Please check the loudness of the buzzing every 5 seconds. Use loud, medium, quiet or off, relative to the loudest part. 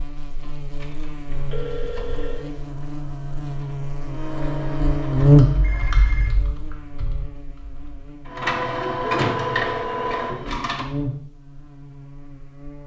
medium, loud, quiet.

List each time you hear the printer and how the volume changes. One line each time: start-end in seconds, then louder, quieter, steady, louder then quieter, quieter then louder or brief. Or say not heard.
0.2-6.2 louder
8.2-10.8 brief.